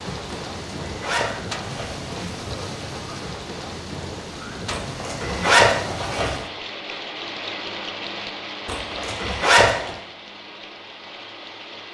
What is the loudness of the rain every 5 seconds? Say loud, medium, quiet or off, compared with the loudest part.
loud, loud, medium.